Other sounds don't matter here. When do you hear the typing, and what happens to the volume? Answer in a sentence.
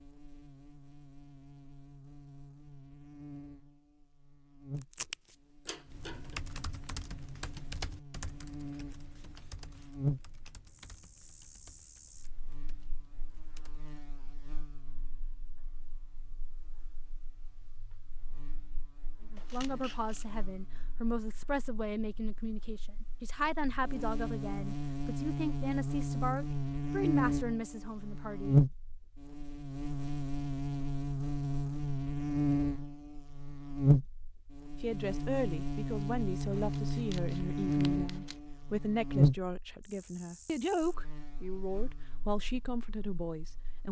The typing can be heard from 5.8 to 14.1 s, getting quieter.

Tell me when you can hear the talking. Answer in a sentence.
You can hear the talking from 19.3 to 28.6 s and from 34.8 to 43.8 s.